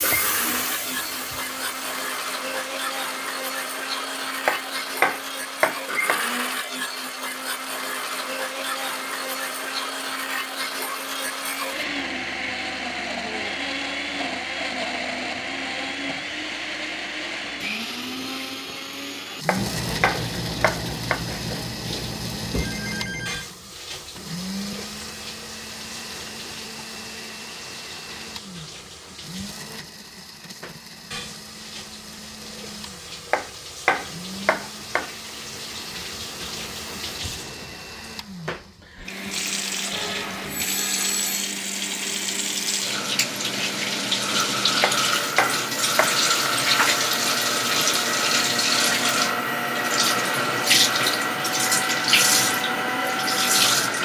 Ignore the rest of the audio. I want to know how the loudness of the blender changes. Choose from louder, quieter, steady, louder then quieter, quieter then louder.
quieter then louder.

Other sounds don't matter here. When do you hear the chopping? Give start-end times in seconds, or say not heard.
4.5-6.2, 19.4-21.2, 33.3-35.1, 44.8-46.5.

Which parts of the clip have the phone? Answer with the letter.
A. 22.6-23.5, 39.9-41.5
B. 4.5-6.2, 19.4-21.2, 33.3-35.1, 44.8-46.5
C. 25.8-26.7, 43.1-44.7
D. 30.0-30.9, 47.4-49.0
A.